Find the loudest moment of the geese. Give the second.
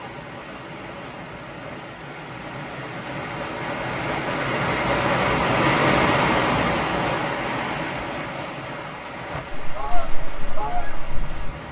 11 s.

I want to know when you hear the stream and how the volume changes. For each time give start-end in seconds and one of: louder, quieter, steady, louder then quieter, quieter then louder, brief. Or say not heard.
0.0-11.6 louder then quieter.